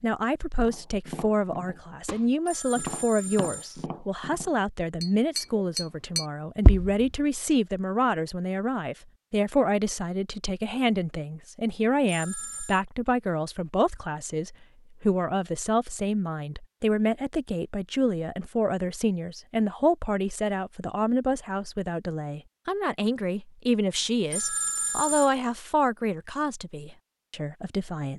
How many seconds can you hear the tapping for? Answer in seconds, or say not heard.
6 s.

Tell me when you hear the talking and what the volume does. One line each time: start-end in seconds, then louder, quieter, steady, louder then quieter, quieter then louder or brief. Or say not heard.
0.0-28.1 steady.